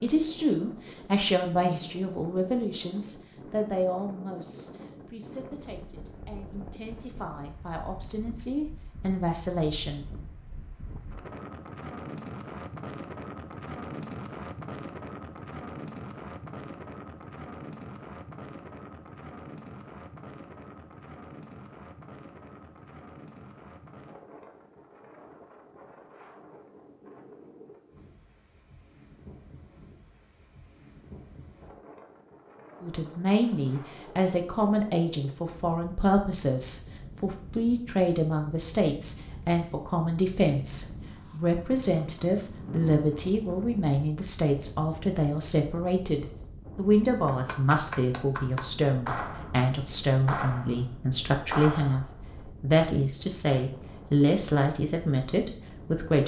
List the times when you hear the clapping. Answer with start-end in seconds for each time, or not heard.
47.2-52.4.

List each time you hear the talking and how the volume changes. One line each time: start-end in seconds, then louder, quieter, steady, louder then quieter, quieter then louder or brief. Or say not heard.
0.0-10.1 quieter then louder
32.8-56.2 steady.